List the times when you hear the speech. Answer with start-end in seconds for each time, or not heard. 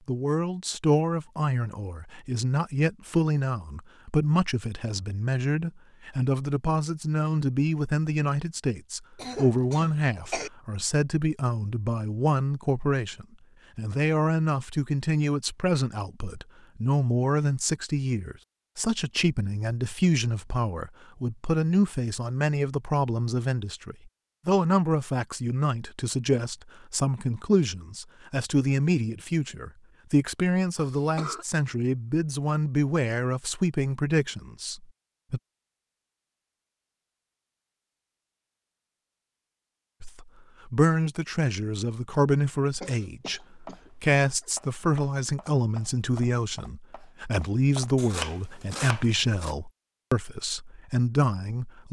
0.1-35.4, 40.0-51.8.